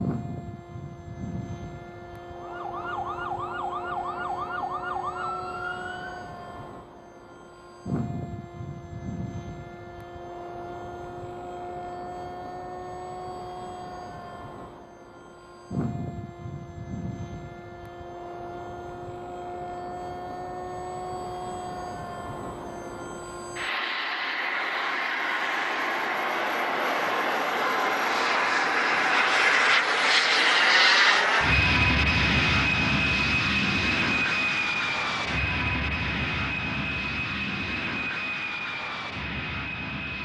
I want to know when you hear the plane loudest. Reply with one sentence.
The volume of the plane peaks at 31 seconds.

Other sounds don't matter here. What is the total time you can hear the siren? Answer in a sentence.
The siren can be heard for 4 seconds in total.